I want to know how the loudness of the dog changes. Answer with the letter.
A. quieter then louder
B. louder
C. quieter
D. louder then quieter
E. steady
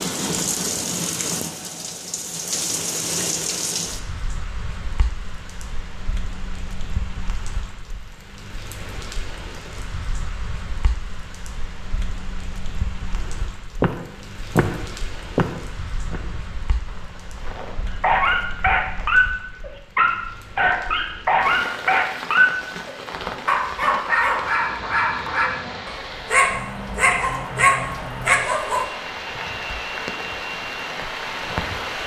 E.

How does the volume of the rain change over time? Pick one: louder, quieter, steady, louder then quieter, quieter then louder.
quieter then louder.